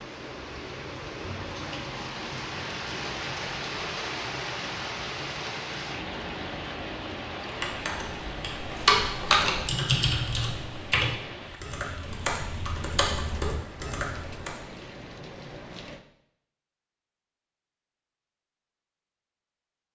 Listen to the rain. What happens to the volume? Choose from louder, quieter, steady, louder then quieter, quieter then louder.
quieter.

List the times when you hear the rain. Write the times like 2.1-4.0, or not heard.
0.0-16.1.